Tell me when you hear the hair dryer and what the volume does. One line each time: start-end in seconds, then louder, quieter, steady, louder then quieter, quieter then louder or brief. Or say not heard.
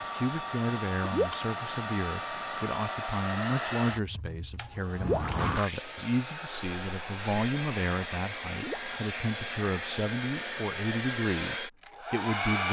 0.0-12.6 steady.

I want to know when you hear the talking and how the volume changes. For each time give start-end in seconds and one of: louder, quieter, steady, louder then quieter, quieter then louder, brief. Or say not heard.
0.0-12.6 steady.